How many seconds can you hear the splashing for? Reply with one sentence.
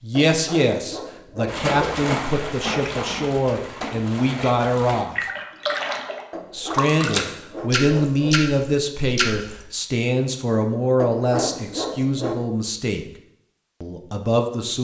The splashing can be heard for 8 seconds in total.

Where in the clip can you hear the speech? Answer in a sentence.
You can hear the speech from 0.0 to 5.2 s, from 6.5 to 13.1 s and from 13.8 to 14.7 s.